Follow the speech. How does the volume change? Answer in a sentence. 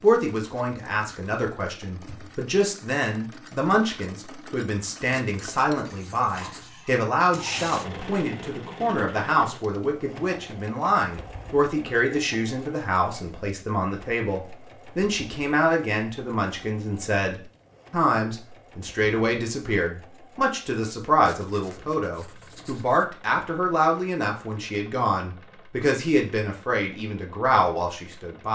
The volume of the speech stays about the same.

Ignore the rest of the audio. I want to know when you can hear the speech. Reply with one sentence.
You can hear the speech from 0.0 to 28.4 s.